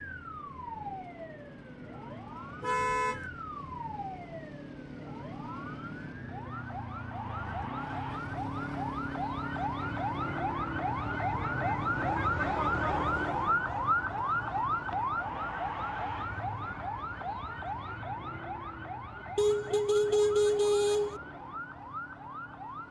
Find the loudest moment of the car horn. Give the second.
20 s.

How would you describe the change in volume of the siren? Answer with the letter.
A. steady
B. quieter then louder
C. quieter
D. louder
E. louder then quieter
E.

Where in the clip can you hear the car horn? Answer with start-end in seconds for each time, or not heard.
2.6-3.2, 19.4-21.2.